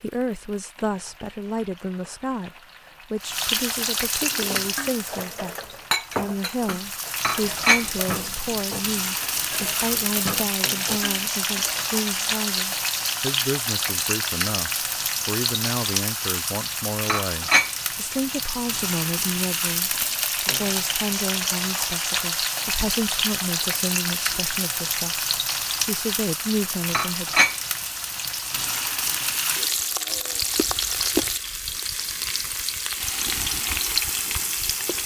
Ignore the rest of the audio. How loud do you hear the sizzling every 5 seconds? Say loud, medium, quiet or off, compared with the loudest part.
medium, loud, loud, loud, loud, loud, loud.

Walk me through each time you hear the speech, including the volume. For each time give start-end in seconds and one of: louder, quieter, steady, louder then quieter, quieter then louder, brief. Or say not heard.
0.0-27.4 steady.